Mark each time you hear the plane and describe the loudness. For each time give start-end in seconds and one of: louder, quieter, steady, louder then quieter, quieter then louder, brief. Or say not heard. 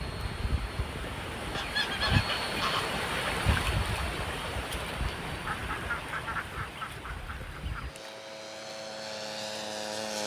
0.0-10.2 quieter then louder.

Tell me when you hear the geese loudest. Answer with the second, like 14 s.
2 s.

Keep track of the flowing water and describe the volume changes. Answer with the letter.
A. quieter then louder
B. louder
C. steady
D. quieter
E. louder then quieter
E.